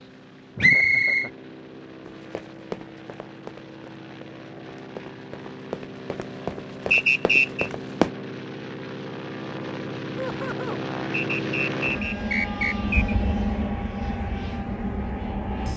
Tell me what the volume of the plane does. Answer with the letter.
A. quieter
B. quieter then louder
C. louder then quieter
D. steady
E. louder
E.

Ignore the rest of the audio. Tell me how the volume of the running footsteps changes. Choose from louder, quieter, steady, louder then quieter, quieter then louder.
quieter then louder.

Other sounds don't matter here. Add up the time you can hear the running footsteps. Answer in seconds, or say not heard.
6 s.